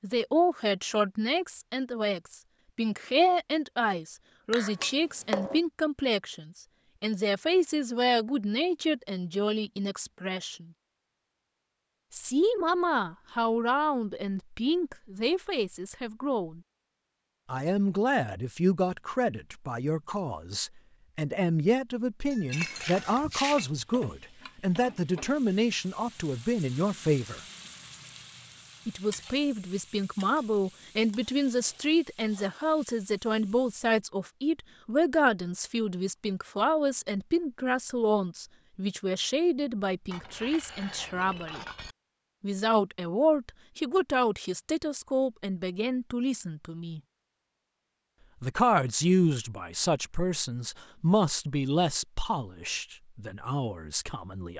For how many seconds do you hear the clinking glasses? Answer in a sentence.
The clinking glasses can be heard for 4 seconds in total.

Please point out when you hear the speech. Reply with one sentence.
You can hear the speech from 0.0 to 10.7 s, from 12.1 to 16.6 s, from 17.4 to 27.4 s, from 28.9 to 41.6 s, from 42.4 to 47.0 s and from 48.4 to 54.5 s.